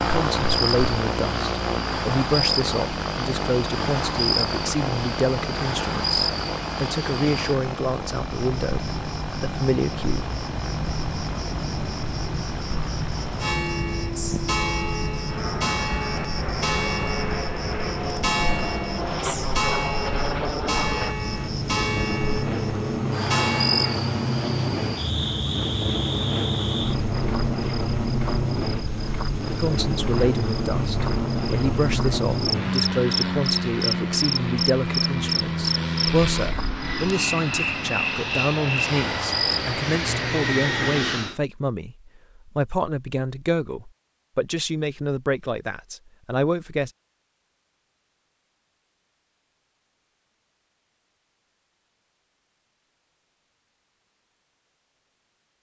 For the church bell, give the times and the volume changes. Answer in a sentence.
The church bell can be heard from 13.4 to 24.0 s, at a steady volume.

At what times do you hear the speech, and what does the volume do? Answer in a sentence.
The speech can be heard from 0.0 to 10.3 s, at a steady volume; and from 29.6 to 46.9 s, at a steady volume.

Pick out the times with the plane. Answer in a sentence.
The plane can be heard from 0.0 to 41.4 s.